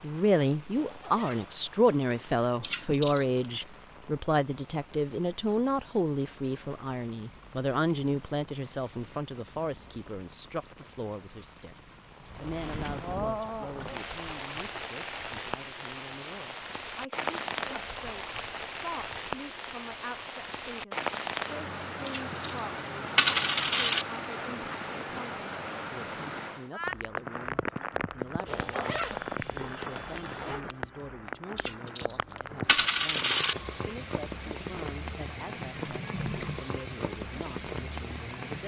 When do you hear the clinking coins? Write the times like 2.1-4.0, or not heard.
2.6-3.5, 22.1-24.1, 31.6-33.5.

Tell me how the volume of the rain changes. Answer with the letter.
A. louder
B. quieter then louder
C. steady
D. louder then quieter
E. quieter
A.